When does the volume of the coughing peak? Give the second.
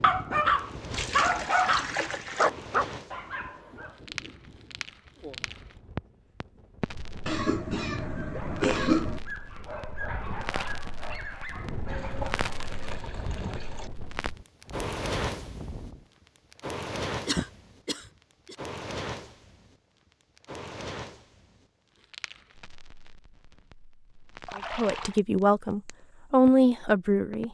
9 s.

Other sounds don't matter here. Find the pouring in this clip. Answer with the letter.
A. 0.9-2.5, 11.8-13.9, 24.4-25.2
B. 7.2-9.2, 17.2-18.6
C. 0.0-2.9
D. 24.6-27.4
A.